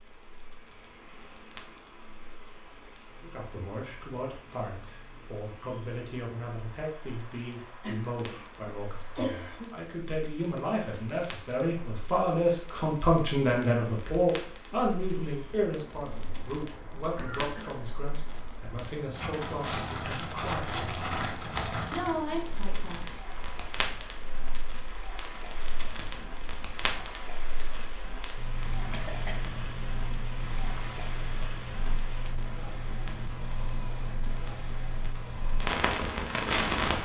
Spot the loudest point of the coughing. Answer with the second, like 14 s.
9 s.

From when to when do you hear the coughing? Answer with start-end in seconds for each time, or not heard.
7.8-9.8, 17.1-17.7, 28.9-29.5.